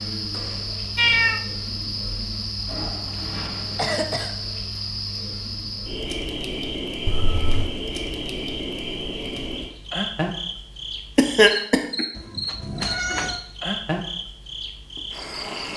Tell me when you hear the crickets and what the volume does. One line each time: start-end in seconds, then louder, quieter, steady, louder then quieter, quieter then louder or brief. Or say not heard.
0.0-15.7 steady.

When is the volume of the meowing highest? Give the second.
1 s.